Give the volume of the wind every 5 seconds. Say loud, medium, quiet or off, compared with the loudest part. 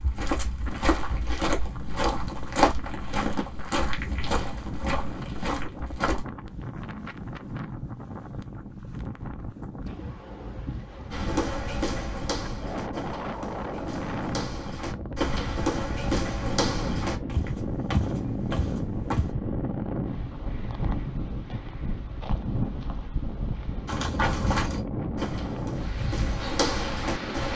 medium, medium, loud, loud, loud, loud.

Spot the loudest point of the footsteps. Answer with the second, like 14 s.
3 s.